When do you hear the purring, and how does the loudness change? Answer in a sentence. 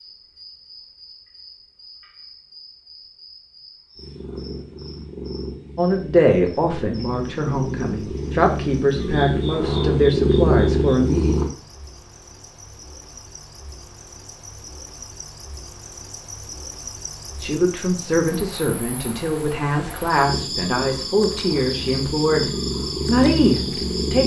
You can hear the purring from 4.0 to 11.5 s, getting louder; and from 20.2 to 24.2 s, getting louder.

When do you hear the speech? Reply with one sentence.
The speech can be heard from 5.8 to 11.3 s and from 17.4 to 24.2 s.